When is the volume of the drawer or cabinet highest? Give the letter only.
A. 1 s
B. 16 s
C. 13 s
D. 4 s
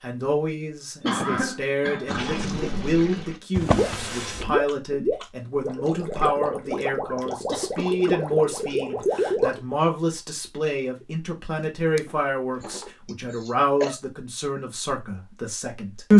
D.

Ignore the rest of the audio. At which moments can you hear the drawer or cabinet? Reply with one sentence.
You can hear the drawer or cabinet from 3.5 to 4.7 s and from 11.6 to 12.9 s.